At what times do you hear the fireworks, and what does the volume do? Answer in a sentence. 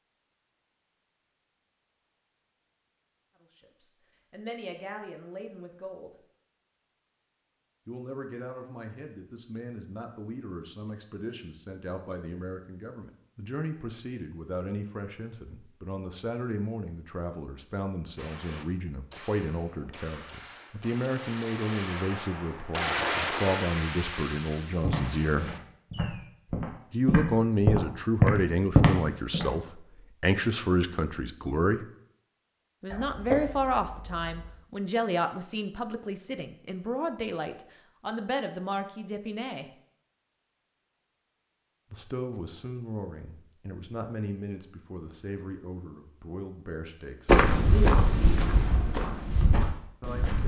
You can hear the fireworks from 18.1 to 26.3 s, getting louder then quieter.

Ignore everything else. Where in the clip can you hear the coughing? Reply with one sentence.
You can hear the coughing from 32.9 to 34.5 s.